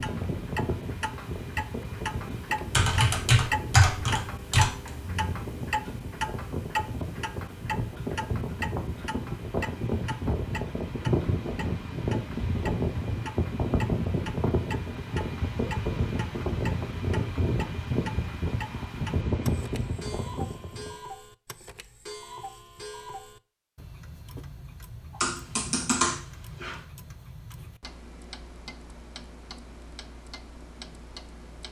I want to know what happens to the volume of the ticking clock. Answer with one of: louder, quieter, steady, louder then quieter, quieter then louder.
quieter.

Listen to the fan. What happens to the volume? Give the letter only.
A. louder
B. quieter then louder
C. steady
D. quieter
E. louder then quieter
A.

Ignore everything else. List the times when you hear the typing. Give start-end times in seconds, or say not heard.
2.7-4.7, 25.2-26.8.